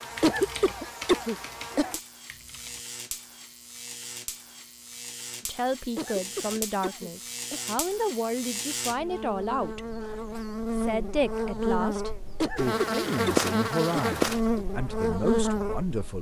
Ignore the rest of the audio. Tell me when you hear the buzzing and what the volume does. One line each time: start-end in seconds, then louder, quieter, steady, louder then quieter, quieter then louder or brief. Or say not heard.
0.0-16.1 louder.